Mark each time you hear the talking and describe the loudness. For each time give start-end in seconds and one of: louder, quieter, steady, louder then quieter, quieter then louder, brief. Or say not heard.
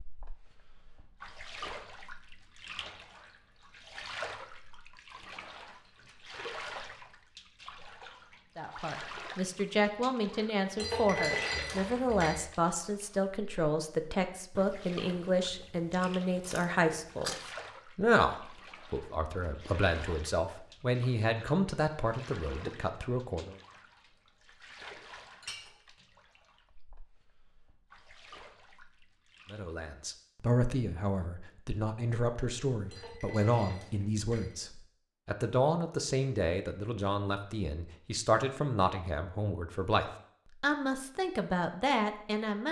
8.6-23.6 steady
29.5-42.6 steady.